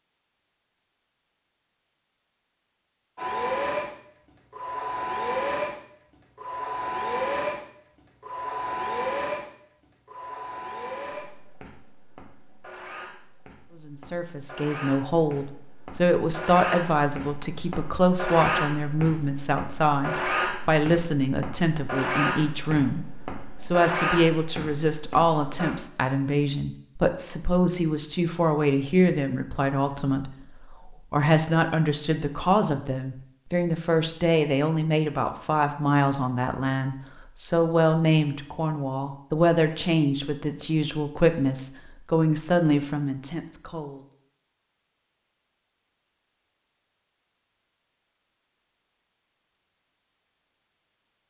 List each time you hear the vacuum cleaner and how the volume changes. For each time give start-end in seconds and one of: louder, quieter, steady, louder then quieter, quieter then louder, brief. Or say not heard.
3.1-25.7 quieter then louder.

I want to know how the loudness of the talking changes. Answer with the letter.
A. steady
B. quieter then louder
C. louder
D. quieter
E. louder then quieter
A.